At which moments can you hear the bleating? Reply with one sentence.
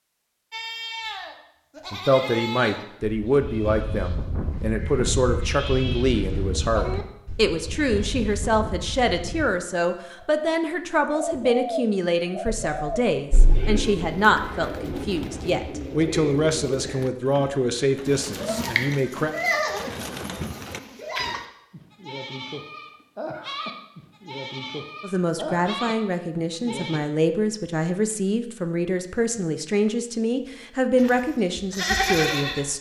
The bleating can be heard from 0.5 to 9.4 s, from 18.2 to 27.0 s and from 30.9 to 32.7 s.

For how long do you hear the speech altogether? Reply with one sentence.
The speech can be heard for 25 seconds in total.